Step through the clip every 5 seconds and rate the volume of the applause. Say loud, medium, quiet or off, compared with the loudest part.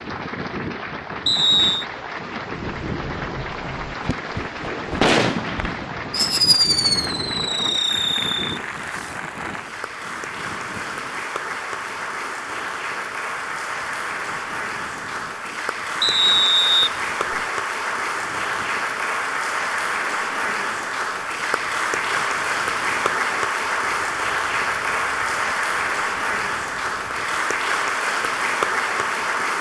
medium, medium, medium, loud, loud, loud.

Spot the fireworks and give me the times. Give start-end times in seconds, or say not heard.
2.6-9.2.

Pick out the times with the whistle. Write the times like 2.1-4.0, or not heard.
1.2-1.9, 16.0-17.4.